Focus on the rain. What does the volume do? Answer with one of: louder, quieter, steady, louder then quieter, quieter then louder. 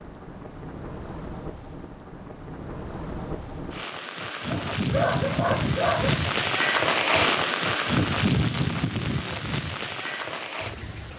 louder then quieter.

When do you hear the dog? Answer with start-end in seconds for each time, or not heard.
4.5-6.2.